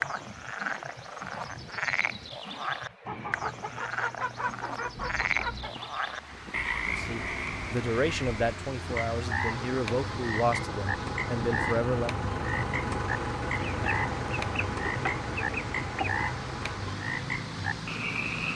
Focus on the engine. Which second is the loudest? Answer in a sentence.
The volume of the engine peaks at 13 seconds.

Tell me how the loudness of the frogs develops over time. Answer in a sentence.
The loudness of the frogs stays about the same.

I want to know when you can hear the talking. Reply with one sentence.
The talking can be heard from 7.0 to 12.1 s.